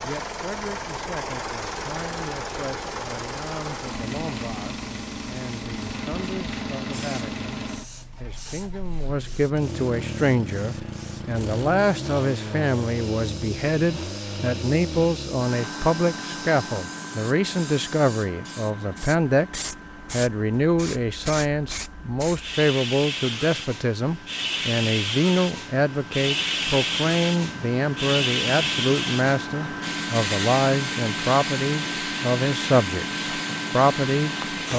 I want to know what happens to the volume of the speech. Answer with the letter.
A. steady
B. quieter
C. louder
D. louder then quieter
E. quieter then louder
C.